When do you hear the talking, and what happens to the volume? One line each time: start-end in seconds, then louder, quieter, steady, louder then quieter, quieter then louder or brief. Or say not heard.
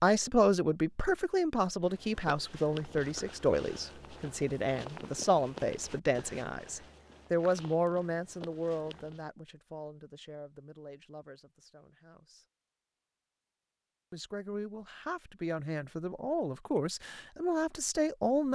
0.0-12.4 quieter
14.1-18.5 louder.